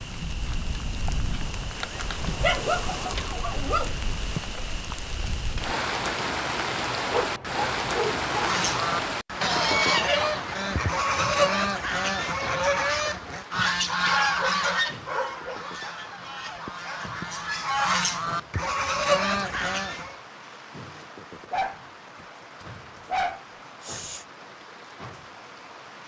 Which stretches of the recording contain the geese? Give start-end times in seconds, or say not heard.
8.2-20.2.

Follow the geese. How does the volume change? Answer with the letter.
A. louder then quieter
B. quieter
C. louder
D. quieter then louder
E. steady
D.